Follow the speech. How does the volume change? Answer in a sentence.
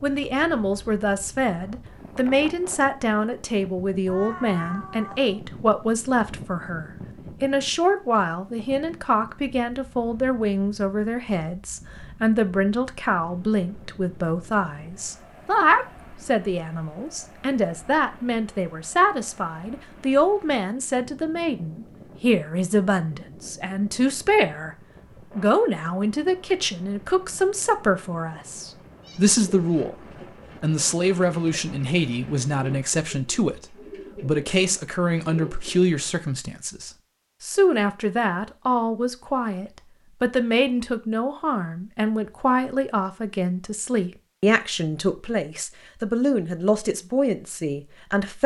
The volume of the speech stays about the same.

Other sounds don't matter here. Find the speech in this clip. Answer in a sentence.
The speech can be heard from 0.0 to 24.8 s, from 25.4 to 29.9 s and from 30.6 to 48.4 s.